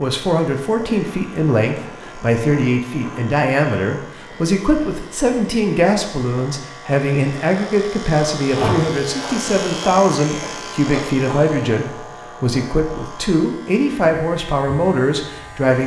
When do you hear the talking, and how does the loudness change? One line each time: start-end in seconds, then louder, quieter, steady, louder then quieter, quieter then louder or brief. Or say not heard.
0.0-15.8 steady.